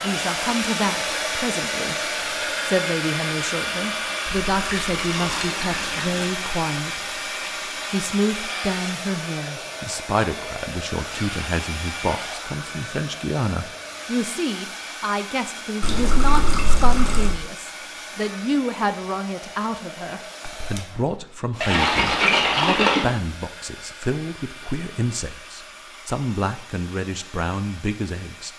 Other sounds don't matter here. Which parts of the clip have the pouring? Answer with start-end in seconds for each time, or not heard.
4.3-6.2, 15.8-17.4, 21.6-23.1.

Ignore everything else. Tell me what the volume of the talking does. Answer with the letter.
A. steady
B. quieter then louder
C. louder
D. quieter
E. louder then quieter
A.